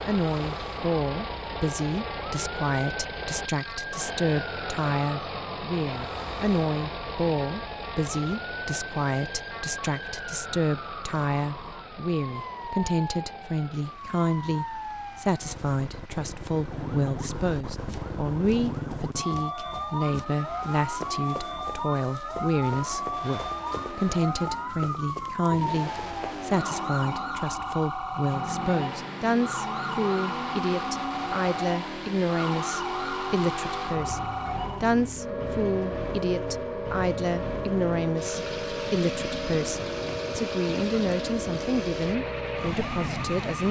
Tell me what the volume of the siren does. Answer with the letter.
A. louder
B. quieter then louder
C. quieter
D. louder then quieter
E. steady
A.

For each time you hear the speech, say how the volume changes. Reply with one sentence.
The speech can be heard from 0.1 to 43.6 s, at a steady volume.